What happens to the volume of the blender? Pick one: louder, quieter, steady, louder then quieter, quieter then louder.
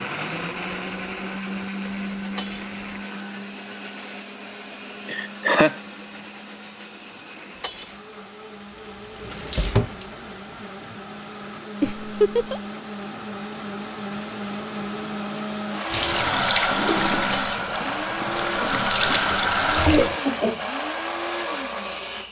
quieter then louder.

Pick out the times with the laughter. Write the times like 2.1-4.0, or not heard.
5.0-5.8, 11.8-12.6, 18.6-20.6.